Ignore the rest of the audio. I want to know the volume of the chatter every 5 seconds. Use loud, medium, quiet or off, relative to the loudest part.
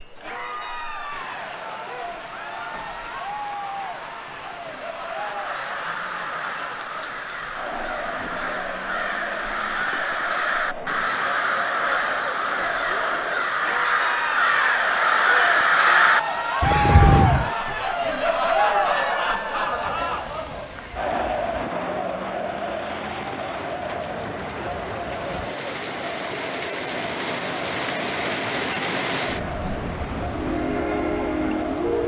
medium, medium, medium, loud, medium, medium, medium.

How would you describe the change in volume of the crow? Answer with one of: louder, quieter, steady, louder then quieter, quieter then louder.
louder.